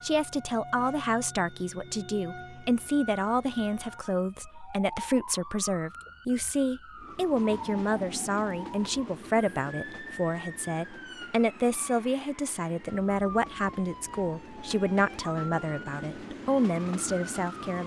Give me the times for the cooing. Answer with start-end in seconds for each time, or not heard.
not heard.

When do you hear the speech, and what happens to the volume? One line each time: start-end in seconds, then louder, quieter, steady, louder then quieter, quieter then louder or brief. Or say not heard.
0.0-17.8 steady.